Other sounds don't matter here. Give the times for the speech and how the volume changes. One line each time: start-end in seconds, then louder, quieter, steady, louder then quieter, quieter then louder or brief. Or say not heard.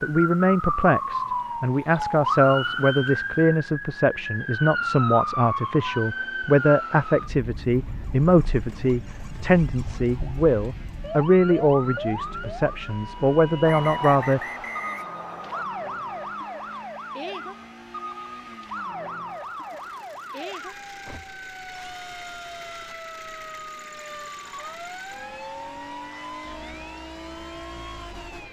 0.0-14.4 steady.